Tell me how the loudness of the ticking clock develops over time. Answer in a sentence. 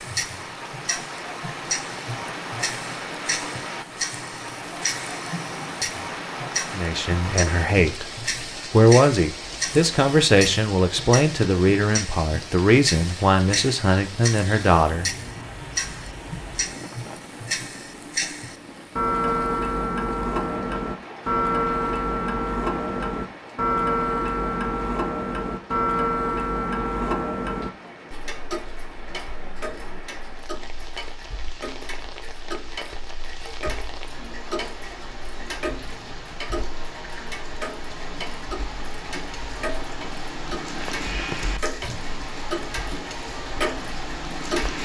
The loudness of the ticking clock goes up, then down.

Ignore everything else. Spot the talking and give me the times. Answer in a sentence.
You can hear the talking from 6.7 to 15.1 s.